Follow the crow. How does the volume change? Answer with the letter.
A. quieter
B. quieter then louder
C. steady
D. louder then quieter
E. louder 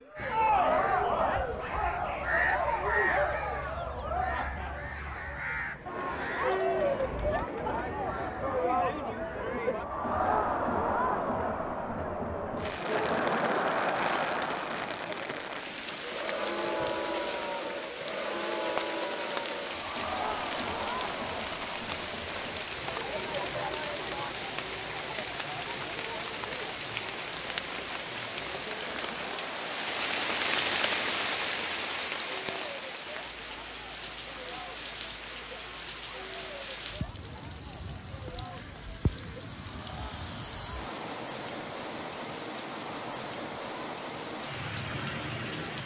A.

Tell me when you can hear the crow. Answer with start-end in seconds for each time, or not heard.
0.1-10.7.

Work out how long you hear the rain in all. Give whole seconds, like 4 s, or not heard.
33 s.